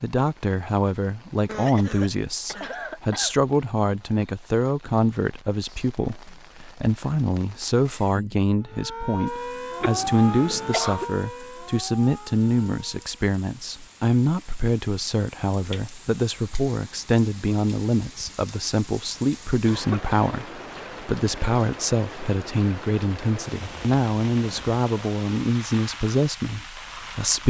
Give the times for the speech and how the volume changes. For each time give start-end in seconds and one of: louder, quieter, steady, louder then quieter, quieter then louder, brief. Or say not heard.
0.0-27.4 steady.